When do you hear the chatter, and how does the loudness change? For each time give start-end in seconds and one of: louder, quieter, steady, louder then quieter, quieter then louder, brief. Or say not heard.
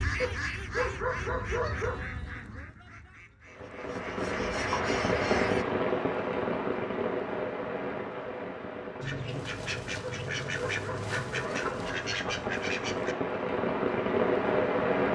not heard.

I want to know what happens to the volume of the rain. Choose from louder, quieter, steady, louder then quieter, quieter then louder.
quieter then louder.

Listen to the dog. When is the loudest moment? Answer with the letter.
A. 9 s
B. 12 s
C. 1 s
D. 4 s
C.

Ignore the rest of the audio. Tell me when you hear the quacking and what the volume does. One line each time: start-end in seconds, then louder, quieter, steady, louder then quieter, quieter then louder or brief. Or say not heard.
0.0-5.7 quieter then louder
9.0-13.2 steady.